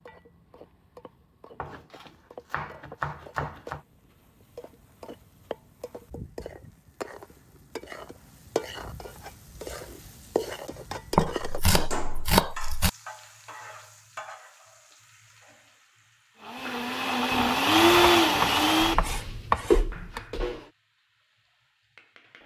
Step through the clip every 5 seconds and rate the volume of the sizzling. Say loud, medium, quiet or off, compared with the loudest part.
medium, loud, loud, quiet, quiet.